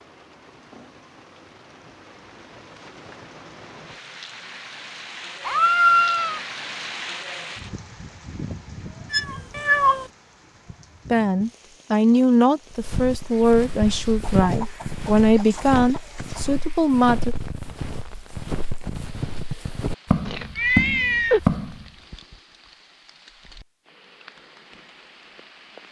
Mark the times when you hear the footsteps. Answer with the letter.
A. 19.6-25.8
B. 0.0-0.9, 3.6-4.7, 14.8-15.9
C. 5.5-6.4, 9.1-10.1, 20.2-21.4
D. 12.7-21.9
D.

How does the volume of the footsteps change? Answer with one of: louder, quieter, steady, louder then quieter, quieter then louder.
louder.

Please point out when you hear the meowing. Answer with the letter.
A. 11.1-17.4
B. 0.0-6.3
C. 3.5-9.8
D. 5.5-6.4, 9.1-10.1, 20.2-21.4
D.